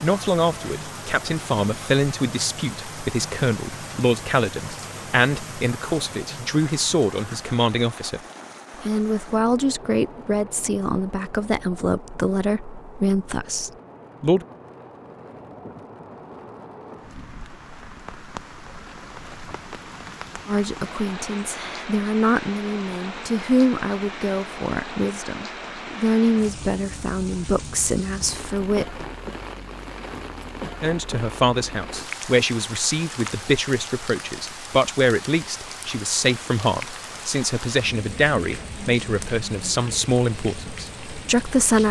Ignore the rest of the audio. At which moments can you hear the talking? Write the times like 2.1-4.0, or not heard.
0.0-8.2, 8.8-14.4, 20.4-29.0, 30.8-41.8.